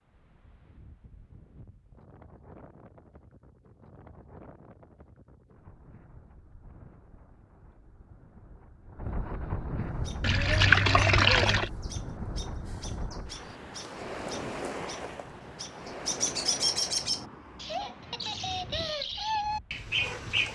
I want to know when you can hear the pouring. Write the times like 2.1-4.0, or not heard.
10.2-11.7.